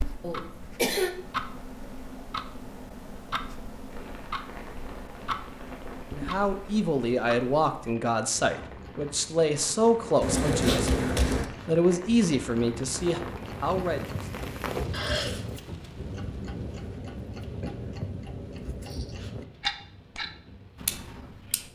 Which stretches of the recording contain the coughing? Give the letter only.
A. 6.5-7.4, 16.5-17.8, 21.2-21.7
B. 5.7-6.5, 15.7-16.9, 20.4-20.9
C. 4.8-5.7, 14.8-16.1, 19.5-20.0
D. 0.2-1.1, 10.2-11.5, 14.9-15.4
D.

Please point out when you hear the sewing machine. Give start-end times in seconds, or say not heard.
not heard.